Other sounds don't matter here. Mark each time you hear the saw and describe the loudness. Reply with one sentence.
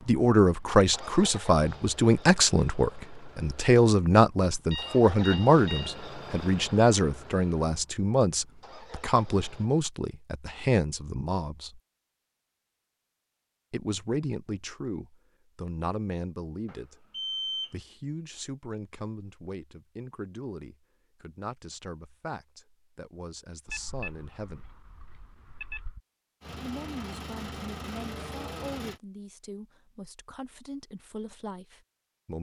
The saw can't be heard in this clip.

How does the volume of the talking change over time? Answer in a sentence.
The volume of the talking goes down.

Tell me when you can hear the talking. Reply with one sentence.
The talking can be heard from 0.1 to 11.8 s, from 13.7 to 24.6 s and from 26.6 to 32.3 s.